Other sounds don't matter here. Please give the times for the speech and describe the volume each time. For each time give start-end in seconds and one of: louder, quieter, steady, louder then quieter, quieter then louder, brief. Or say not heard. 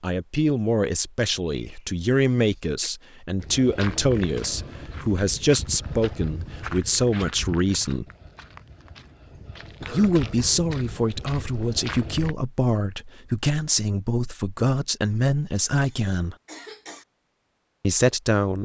0.0-8.1 steady
9.9-16.4 steady
17.8-18.5 brief.